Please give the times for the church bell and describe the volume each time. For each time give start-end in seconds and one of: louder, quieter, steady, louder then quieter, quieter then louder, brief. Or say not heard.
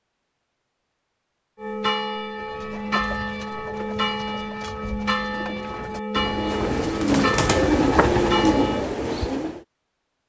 1.6-8.9 steady.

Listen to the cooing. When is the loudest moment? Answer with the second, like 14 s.
8 s.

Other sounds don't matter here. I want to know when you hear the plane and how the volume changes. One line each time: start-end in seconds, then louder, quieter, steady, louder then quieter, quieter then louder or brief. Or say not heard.
not heard.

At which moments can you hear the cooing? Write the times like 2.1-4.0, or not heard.
2.3-9.6.